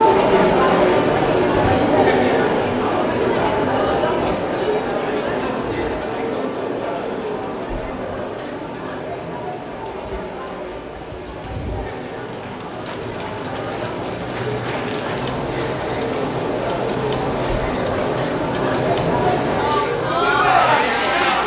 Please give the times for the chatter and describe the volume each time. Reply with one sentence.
You can hear the chatter from 0.0 to 21.4 s, getting quieter then louder.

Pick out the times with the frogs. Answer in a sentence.
You can't hear the frogs here.